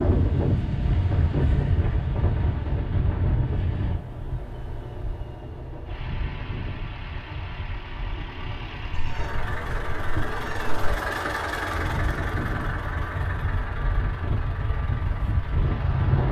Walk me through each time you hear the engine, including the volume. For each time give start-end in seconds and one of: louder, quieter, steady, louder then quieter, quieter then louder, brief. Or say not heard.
0.1-16.2 louder then quieter.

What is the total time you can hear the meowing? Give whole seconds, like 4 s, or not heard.
2 s.